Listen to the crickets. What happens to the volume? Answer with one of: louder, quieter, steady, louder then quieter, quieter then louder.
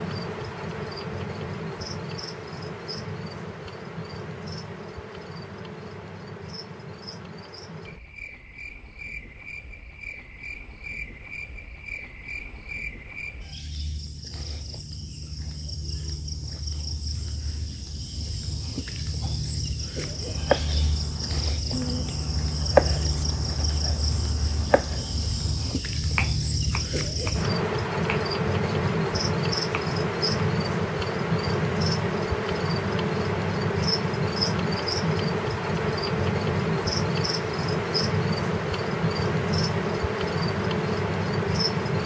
louder.